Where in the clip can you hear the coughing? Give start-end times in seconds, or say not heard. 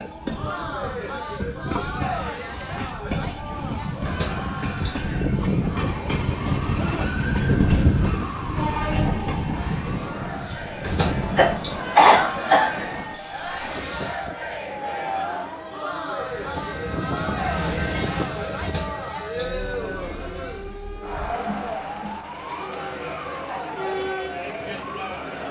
10.9-12.7.